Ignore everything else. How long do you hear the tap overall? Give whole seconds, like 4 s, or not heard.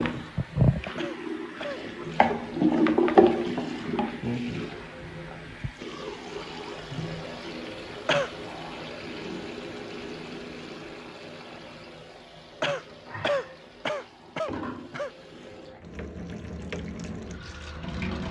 18 s.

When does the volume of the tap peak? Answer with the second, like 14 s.
3 s.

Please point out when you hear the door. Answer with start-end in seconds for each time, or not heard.
not heard.